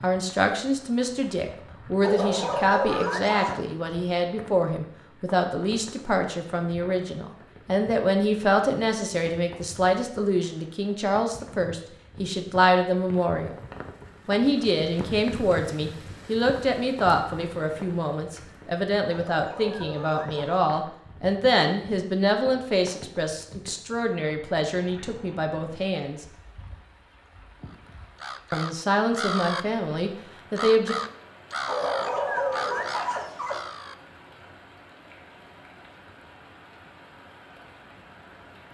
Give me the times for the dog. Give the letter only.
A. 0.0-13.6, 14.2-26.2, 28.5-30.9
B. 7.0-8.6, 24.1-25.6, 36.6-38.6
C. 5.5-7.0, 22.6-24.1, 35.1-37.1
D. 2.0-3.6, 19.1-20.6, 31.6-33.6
D.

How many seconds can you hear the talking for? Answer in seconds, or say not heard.
28 s.